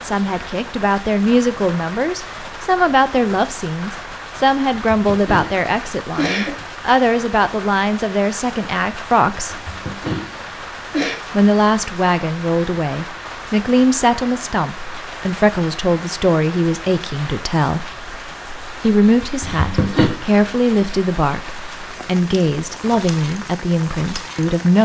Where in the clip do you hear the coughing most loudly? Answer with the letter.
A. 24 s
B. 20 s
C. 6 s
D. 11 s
B.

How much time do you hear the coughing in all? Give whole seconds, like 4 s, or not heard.
4 s.